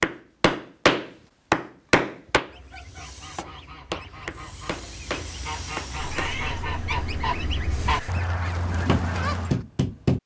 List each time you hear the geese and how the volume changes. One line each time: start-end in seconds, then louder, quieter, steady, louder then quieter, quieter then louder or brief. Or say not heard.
2.5-9.6 louder.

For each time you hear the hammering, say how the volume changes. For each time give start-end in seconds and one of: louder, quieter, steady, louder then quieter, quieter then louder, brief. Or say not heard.
0.0-6.3 quieter then louder
8.8-10.2 brief.